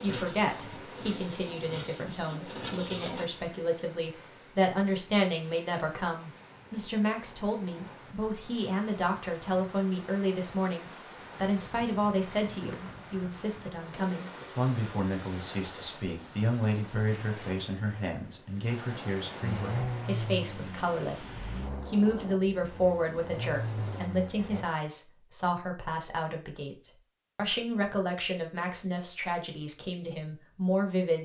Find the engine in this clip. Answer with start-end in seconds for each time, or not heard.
0.0-3.2, 19.4-24.6.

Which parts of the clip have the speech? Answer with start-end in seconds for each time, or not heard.
0.0-31.1.